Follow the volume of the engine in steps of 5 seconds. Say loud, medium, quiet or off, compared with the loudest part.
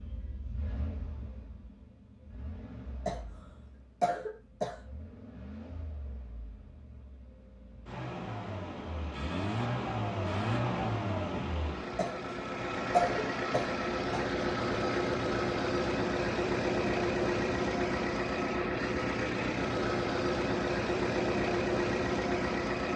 quiet, medium, loud, loud, loud.